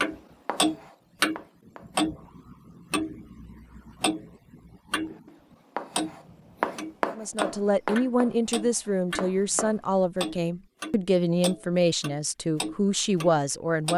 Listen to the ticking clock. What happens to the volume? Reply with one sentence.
The volume of the ticking clock goes down.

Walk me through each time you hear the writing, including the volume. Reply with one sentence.
The writing can be heard briefly from 0.0 to 2.0 s; and from 5.1 to 9.9 s, getting louder then quieter.